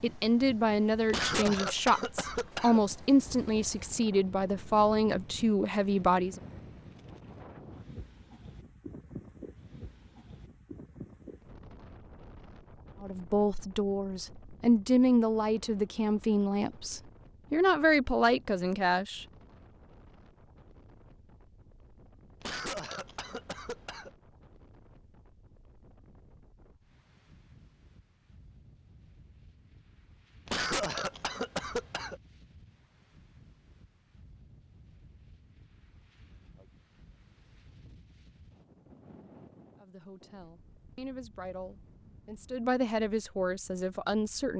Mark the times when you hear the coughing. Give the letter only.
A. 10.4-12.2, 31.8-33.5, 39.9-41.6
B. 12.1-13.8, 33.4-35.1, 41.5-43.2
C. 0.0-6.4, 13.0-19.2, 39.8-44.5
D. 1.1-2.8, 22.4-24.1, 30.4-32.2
D.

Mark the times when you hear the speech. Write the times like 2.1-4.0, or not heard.
0.0-6.4, 13.0-19.2, 39.8-44.5.